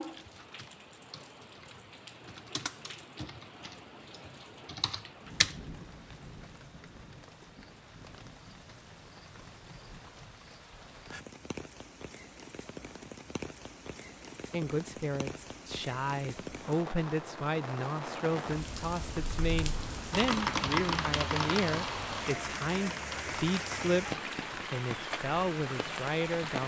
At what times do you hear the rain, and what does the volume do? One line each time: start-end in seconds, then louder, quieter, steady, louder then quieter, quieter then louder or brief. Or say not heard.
0.0-26.6 louder.